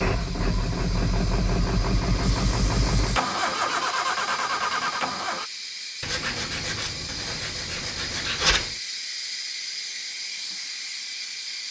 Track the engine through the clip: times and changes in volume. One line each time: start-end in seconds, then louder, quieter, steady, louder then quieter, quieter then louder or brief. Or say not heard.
0.0-5.5 steady.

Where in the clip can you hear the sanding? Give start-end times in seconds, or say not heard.
2.2-3.9, 6.0-8.7.